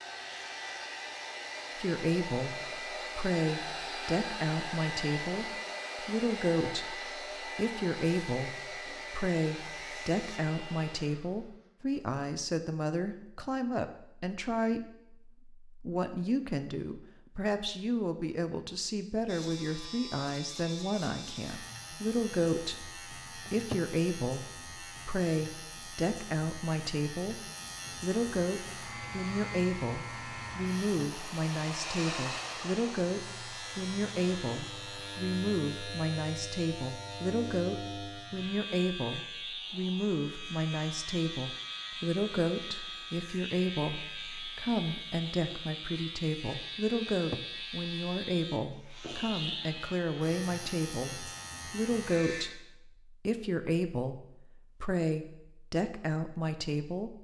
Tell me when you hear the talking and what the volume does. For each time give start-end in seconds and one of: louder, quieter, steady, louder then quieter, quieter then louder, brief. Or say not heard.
1.8-57.1 steady.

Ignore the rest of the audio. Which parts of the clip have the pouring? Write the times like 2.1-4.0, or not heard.
not heard.